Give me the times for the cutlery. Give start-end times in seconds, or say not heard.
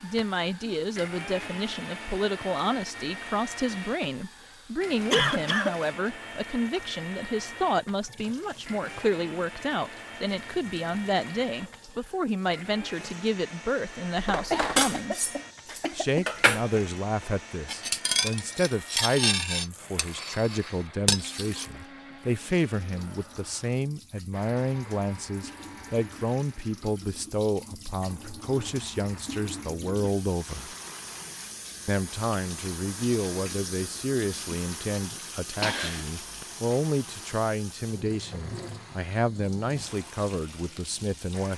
14.2-21.6.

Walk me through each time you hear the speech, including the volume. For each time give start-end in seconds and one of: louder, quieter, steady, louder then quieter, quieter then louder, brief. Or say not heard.
0.0-15.3 steady
15.9-30.8 steady
31.9-41.5 steady.